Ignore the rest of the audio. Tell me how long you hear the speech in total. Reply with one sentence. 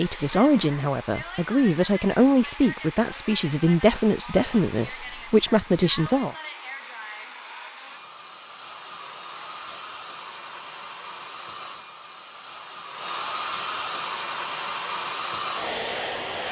The speech can be heard for 6 seconds in total.